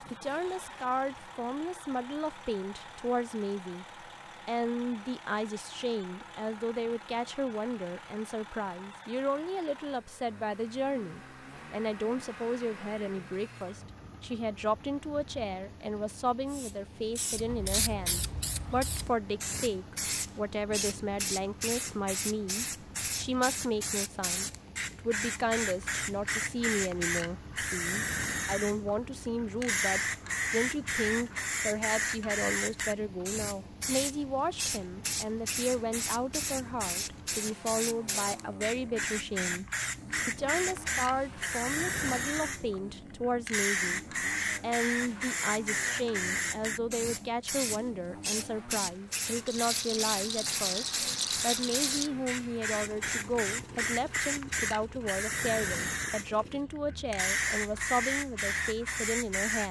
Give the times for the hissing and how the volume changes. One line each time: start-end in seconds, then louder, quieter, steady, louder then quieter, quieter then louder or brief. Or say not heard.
16.5-59.6 steady.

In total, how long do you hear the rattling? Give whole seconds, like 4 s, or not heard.
3 s.